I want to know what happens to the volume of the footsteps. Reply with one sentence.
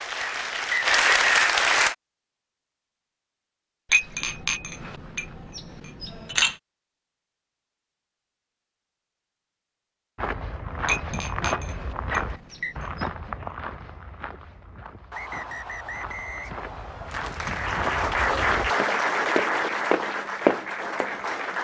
The volume of the footsteps goes down, then up.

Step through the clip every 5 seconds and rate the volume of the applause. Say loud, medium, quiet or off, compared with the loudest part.
loud, off, off, loud, medium.